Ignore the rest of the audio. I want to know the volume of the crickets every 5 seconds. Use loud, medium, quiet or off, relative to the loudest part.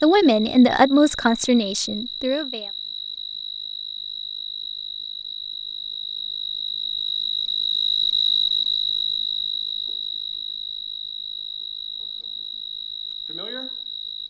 medium, loud, medium.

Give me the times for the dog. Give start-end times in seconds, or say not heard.
not heard.